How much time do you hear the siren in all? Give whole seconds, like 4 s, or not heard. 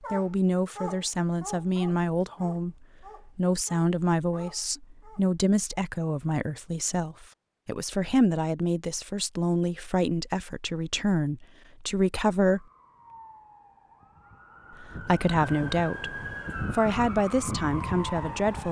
6 s.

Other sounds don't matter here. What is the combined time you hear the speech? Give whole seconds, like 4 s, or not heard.
16 s.